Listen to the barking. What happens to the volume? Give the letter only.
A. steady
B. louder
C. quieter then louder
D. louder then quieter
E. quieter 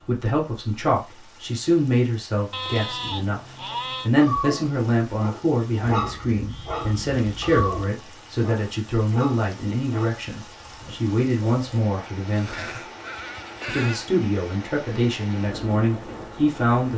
E.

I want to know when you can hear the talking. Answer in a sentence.
You can hear the talking from 0.1 to 12.8 s and from 13.7 to 16.9 s.